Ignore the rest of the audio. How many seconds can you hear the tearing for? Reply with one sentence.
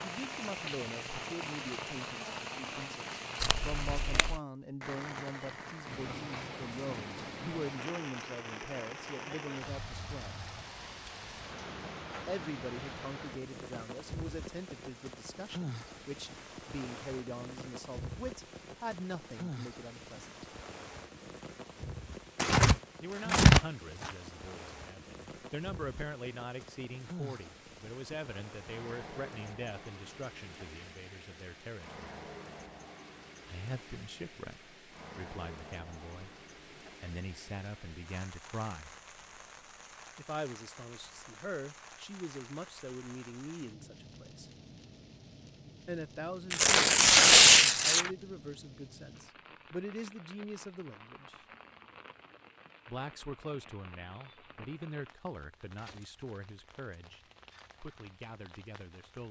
You can hear the tearing for 4 seconds altogether.